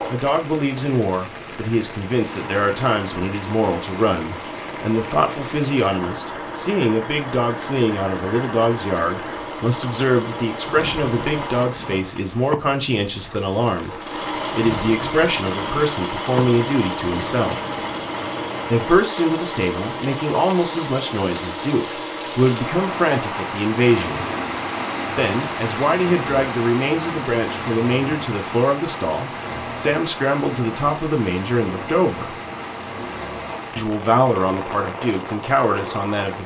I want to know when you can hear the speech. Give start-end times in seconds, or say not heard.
0.1-17.7, 18.6-24.2, 25.1-32.4, 33.8-36.4.